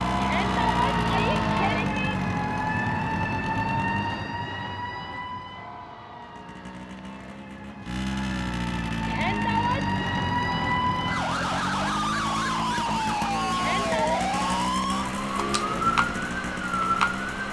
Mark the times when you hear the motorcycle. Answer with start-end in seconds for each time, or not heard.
0.0-4.3, 6.2-17.4.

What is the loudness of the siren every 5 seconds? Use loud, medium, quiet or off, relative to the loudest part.
loud, medium, loud, loud.